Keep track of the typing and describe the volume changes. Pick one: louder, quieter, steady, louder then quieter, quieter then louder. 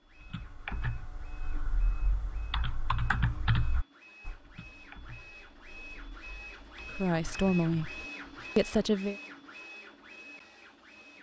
louder then quieter.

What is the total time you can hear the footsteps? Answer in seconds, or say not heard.
not heard.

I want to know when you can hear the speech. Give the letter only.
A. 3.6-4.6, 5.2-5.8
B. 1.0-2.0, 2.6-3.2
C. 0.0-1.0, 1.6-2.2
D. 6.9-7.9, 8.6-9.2
D.